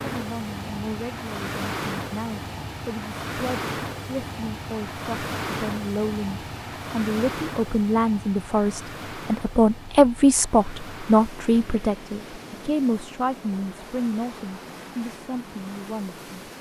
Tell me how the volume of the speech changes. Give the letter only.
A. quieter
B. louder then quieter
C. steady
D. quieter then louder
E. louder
B.